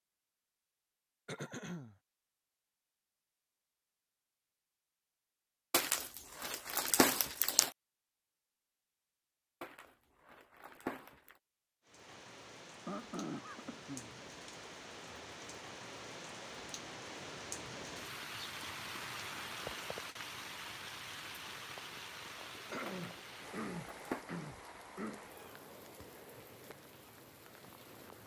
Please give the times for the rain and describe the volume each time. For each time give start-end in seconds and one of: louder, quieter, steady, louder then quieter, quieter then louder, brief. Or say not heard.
11.8-28.2 louder then quieter.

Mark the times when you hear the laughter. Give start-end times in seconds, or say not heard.
not heard.